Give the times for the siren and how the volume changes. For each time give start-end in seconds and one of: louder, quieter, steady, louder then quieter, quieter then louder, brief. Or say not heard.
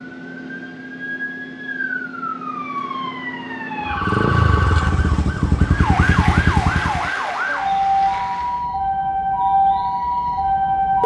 0.0-11.0 louder.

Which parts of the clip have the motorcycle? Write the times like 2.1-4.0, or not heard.
3.9-7.1.